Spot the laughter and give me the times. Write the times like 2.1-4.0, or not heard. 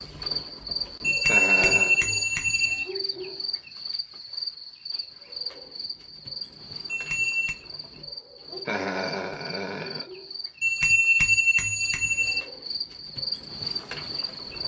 1.2-2.0, 8.7-10.1.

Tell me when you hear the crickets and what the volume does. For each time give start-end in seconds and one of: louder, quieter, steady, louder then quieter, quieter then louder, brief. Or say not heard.
0.0-14.6 quieter then louder.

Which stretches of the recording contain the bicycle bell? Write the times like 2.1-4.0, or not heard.
1.0-2.9, 6.8-7.5, 10.6-12.4.